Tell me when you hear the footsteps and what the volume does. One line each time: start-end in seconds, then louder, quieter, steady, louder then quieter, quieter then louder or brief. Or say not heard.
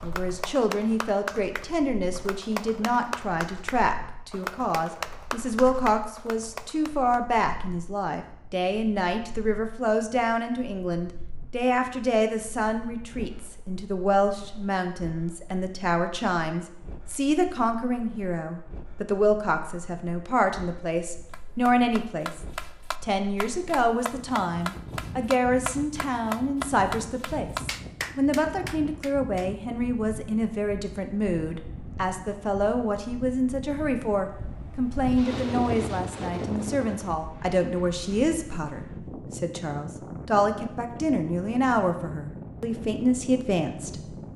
not heard.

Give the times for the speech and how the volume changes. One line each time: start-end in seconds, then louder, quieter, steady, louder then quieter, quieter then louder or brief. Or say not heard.
0.0-22.4 steady
23.0-44.3 steady.